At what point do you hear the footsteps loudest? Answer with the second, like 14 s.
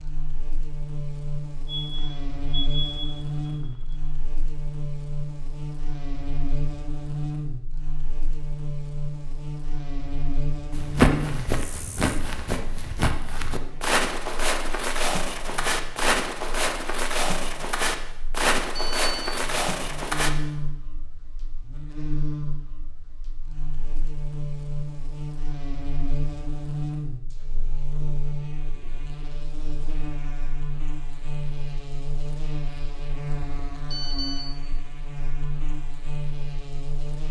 11 s.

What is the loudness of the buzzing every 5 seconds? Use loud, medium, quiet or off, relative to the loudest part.
loud, loud, loud, quiet, loud, loud, loud, loud.